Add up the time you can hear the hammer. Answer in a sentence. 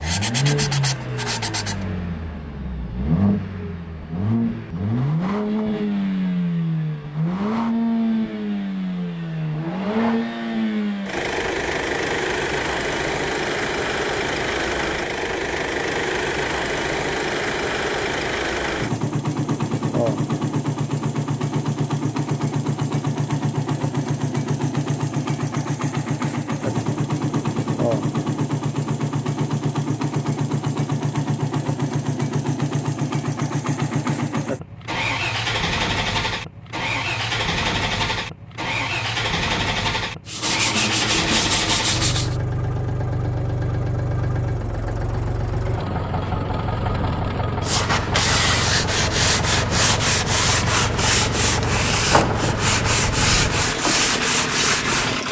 You can't hear the hammer here.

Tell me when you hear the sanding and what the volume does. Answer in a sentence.
You can hear the sanding briefly from 0.0 to 1.9 s; briefly from 40.2 to 42.4 s; and from 47.6 to 55.2 s, at a steady volume.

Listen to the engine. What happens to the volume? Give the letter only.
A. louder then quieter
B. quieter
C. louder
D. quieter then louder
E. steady
E.